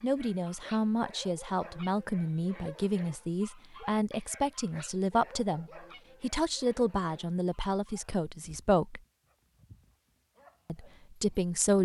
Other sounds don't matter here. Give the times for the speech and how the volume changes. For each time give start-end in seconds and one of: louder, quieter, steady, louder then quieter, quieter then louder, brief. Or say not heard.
0.0-9.0 steady
10.7-11.8 brief.